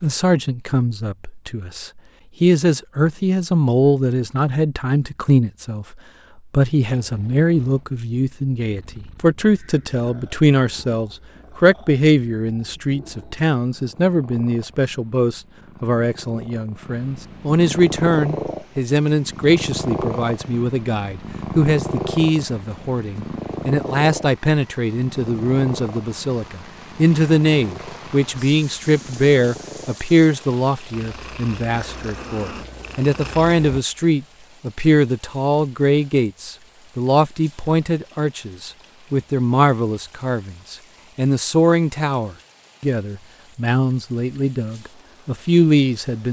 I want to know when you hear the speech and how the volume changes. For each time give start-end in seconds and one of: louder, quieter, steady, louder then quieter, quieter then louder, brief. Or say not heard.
0.0-46.2 steady.